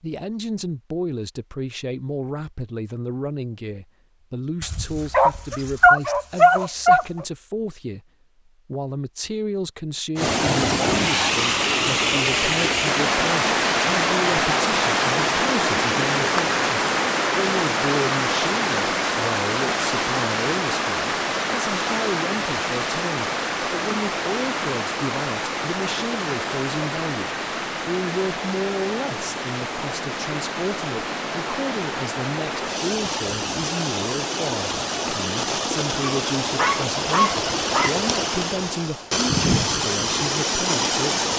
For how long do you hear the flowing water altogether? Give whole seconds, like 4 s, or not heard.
31 s.